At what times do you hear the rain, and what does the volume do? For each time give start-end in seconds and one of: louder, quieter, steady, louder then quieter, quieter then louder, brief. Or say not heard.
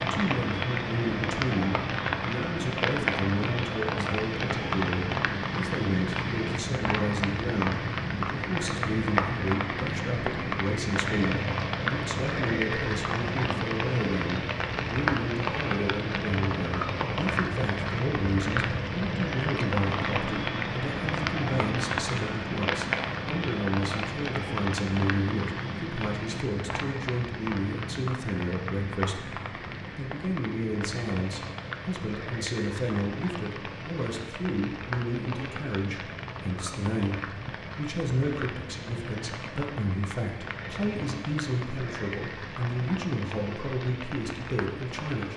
0.0-45.3 quieter.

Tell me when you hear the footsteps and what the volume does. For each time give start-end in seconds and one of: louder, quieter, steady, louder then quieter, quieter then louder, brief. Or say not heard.
not heard.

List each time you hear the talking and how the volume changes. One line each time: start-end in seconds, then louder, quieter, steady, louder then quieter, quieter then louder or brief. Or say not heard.
0.0-29.4 steady
29.9-45.3 steady.